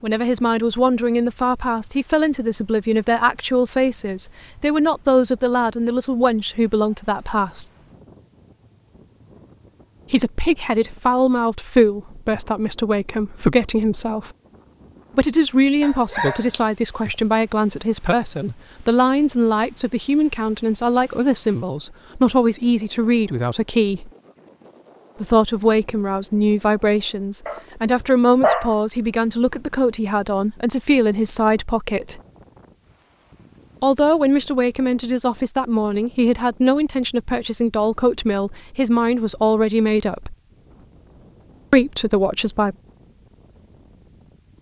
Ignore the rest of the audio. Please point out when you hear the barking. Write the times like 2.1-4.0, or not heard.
15.8-16.6, 27.4-28.8.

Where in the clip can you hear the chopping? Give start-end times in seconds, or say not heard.
not heard.